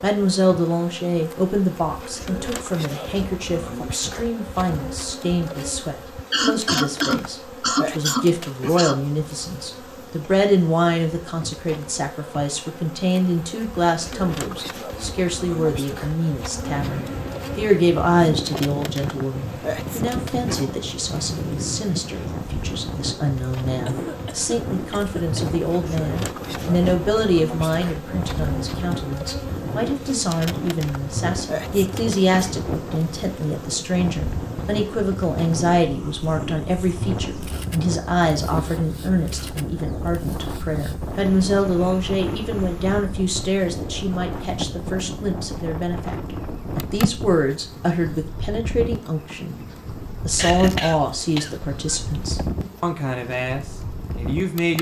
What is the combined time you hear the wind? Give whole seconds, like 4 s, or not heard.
38 s.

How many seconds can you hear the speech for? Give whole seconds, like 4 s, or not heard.
54 s.